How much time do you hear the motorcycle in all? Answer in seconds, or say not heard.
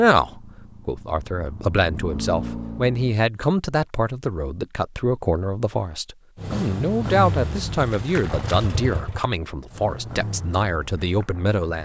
8 s.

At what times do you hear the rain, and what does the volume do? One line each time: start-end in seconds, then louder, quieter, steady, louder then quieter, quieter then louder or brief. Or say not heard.
not heard.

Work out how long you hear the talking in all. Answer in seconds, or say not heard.
12 s.